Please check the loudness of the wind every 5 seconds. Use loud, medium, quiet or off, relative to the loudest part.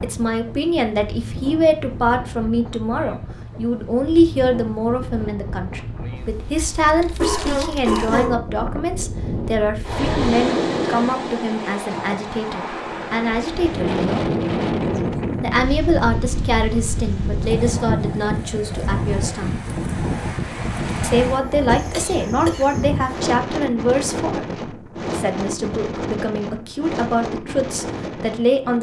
medium, medium, loud, loud, loud, medium.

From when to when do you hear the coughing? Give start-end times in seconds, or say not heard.
7.2-8.4, 21.6-22.8.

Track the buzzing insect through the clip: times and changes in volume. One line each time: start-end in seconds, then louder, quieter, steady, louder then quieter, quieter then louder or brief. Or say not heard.
not heard.